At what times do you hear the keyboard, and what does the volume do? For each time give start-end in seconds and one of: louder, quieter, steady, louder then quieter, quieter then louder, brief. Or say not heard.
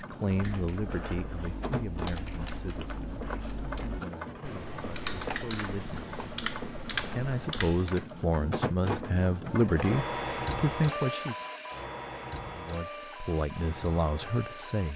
0.2-8.2 louder.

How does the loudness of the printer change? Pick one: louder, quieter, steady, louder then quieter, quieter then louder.
louder then quieter.